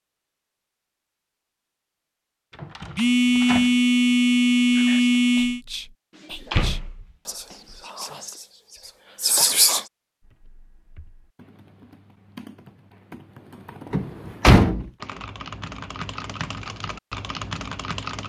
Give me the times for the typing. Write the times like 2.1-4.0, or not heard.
10.2-18.2.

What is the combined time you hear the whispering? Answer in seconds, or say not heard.
5 s.